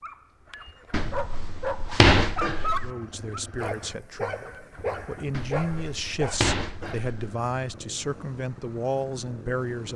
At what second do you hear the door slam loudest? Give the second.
2 s.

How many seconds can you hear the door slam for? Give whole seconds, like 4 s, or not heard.
4 s.